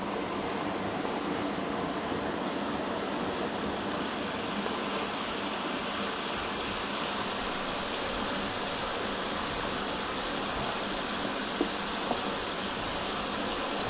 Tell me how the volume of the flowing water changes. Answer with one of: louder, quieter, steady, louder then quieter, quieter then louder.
steady.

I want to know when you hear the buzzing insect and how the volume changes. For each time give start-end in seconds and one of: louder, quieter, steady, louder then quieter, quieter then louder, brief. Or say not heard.
0.0-13.8 steady.